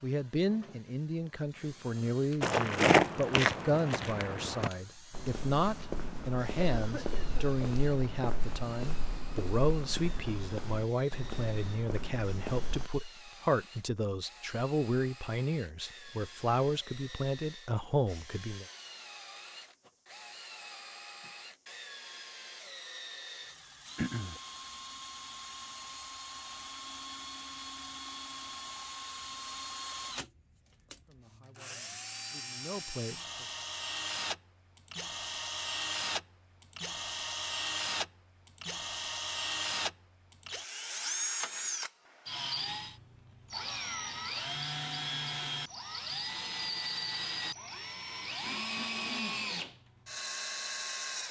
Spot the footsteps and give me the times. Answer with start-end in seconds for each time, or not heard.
2.4-12.9.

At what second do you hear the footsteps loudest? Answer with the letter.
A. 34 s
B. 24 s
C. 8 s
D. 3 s
D.